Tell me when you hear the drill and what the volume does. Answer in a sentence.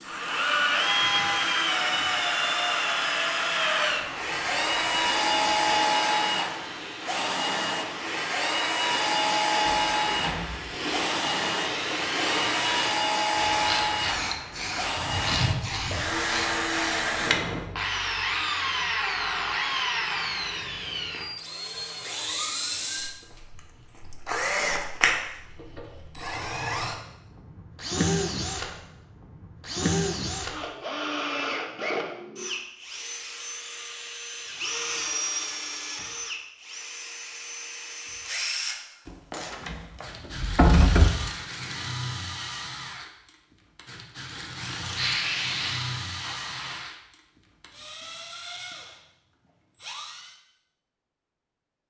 The drill can be heard from 0.1 to 50.4 s, getting quieter.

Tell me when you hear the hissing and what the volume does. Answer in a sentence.
The hissing can be heard from 0.0 to 17.6 s, getting louder; and briefly from 45.0 to 47.0 s.